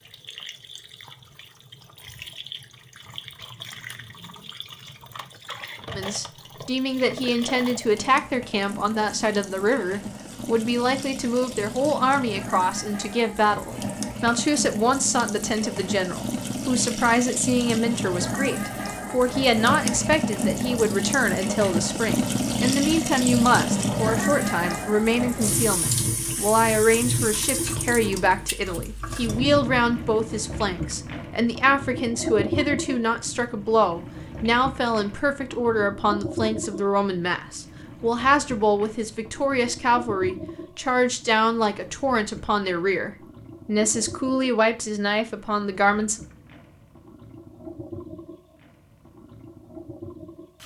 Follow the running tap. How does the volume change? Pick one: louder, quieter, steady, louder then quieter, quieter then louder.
louder then quieter.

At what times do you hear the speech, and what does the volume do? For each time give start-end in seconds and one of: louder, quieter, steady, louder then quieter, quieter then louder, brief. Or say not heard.
6.0-46.2 steady.